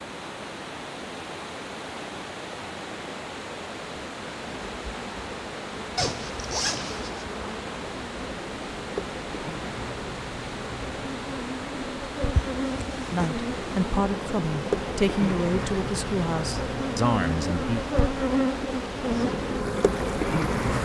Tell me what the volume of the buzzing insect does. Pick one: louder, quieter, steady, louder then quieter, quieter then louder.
louder.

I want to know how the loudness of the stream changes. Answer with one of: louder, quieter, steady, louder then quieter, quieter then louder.
steady.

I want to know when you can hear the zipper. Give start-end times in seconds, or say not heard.
6.0-7.2, 12.3-13.3.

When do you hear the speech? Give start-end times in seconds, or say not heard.
13.1-17.9.